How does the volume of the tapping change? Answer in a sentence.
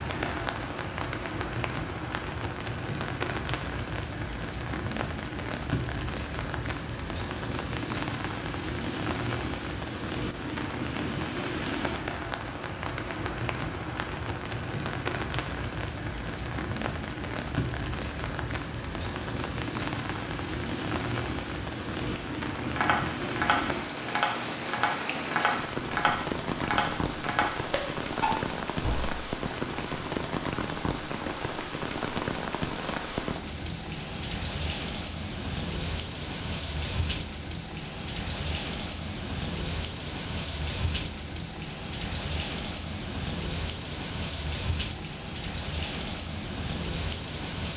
The loudness of the tapping stays about the same.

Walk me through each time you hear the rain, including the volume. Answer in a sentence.
You can hear the rain from 0.0 to 47.7 s, at a steady volume.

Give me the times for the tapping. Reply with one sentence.
The tapping can be heard from 22.1 to 29.1 s.